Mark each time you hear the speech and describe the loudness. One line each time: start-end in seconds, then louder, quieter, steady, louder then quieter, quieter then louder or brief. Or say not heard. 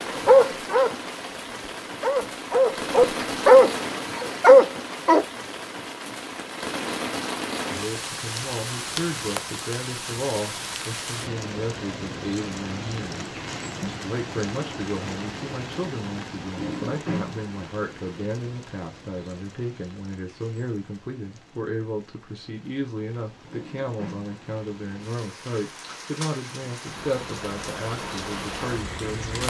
7.7-29.4 steady.